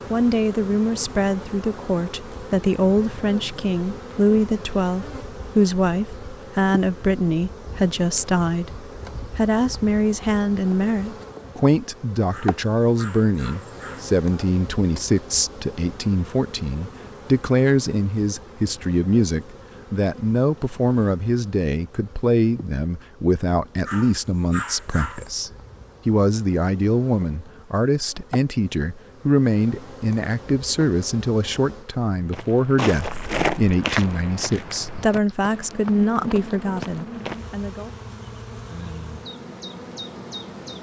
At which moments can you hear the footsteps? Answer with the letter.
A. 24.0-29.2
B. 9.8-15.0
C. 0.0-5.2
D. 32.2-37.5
D.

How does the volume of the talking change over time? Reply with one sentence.
The loudness of the talking stays about the same.